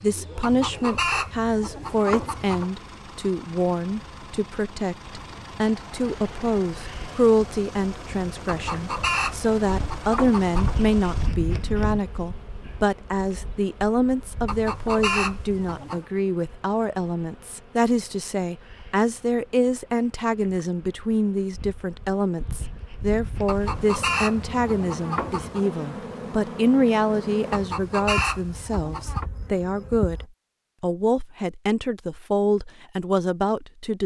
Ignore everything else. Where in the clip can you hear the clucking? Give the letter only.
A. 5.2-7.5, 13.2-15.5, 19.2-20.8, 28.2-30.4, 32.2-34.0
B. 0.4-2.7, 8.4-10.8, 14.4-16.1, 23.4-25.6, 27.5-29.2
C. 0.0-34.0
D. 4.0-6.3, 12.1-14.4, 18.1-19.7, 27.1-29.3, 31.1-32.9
B.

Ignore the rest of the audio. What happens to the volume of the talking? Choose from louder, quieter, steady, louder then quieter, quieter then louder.
steady.